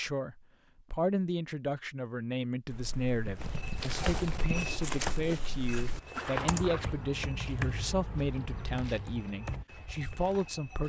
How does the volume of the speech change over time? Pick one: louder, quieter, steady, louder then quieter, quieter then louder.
steady.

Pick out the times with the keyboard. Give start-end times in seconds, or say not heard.
2.6-9.7.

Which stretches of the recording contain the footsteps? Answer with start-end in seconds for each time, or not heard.
3.4-10.8.